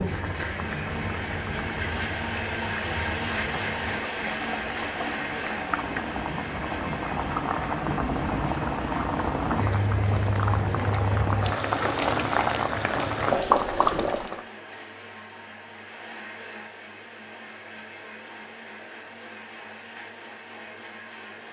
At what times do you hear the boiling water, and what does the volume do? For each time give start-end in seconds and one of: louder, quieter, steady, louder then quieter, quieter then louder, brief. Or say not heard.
0.0-14.4 louder.